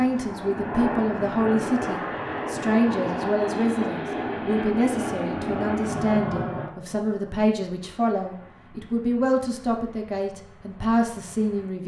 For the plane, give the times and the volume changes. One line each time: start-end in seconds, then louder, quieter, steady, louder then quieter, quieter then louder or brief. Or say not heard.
0.0-11.8 quieter.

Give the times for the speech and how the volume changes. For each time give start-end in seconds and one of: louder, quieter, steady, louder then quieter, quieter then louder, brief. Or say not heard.
0.0-11.8 steady.